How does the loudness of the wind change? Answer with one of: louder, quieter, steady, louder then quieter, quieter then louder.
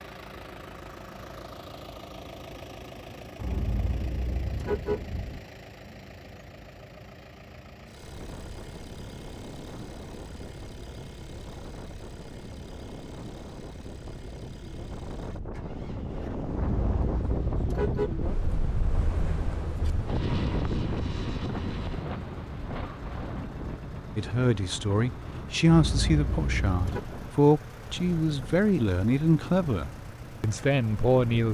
louder then quieter.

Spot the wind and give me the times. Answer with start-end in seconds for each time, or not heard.
8.0-31.4.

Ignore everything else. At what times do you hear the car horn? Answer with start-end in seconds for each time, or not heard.
3.4-5.4, 16.5-18.2, 25.6-27.0.